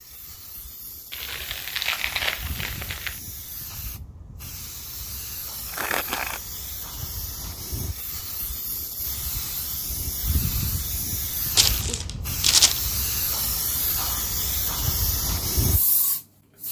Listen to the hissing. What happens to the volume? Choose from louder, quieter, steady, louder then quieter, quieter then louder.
louder.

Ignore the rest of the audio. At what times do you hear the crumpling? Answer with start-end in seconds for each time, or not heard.
1.1-3.2, 5.7-6.4, 11.6-12.8.